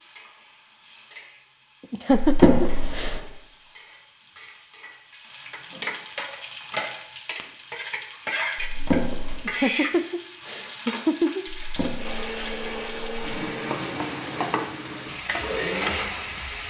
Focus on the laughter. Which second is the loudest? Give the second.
2 s.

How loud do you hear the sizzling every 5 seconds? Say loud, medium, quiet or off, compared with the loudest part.
quiet, loud, loud, loud.